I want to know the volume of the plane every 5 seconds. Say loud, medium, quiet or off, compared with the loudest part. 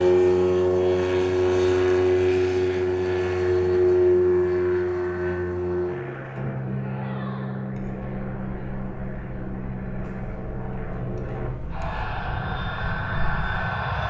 loud, medium, medium.